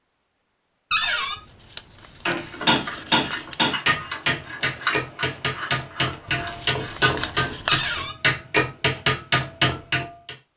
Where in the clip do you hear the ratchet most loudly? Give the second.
5 s.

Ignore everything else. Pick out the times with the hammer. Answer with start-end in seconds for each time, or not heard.
2.2-10.3.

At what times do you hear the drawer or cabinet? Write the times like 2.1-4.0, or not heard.
0.9-1.4, 7.7-8.2.